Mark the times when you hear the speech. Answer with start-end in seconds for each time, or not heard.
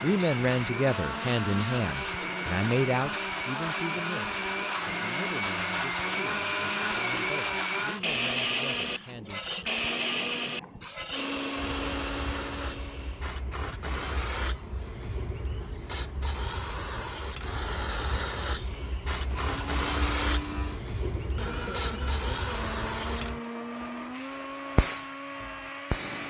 0.0-9.4.